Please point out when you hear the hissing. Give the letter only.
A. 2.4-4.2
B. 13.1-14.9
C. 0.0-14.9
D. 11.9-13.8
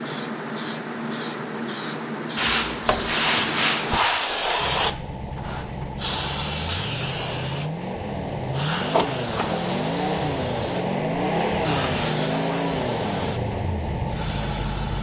C.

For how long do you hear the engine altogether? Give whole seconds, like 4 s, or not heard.
10 s.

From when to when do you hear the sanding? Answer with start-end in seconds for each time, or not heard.
2.4-4.2.